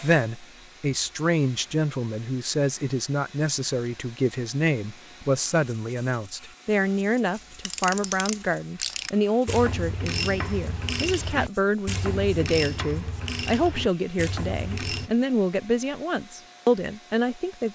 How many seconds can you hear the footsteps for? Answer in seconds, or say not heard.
not heard.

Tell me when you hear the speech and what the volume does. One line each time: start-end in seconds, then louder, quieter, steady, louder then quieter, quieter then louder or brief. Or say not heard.
0.0-17.7 steady.